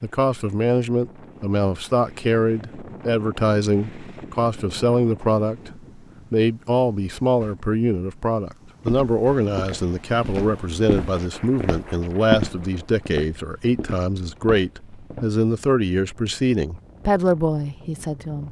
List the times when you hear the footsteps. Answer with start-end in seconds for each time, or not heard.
8.8-15.3.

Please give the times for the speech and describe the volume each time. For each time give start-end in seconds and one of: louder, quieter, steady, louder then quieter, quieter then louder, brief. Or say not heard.
0.0-18.4 steady.